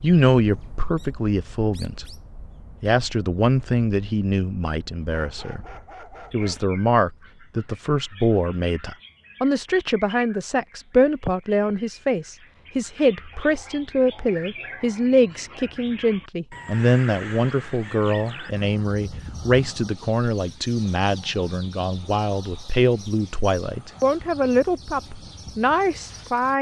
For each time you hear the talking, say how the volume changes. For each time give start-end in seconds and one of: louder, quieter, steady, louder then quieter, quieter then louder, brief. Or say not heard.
0.0-2.0 brief
2.8-5.6 brief
6.3-26.5 steady.